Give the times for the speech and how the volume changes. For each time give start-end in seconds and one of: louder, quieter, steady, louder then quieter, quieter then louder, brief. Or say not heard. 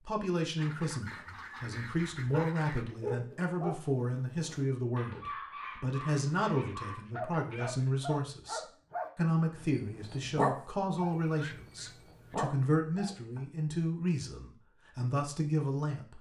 0.1-16.1 steady.